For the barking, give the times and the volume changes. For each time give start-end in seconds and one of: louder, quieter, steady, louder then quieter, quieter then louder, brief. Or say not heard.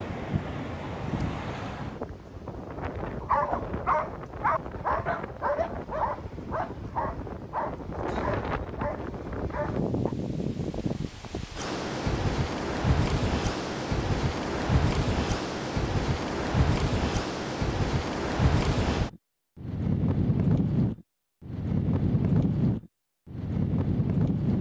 3.2-10.2 quieter.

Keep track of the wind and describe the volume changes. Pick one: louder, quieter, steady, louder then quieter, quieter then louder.
louder.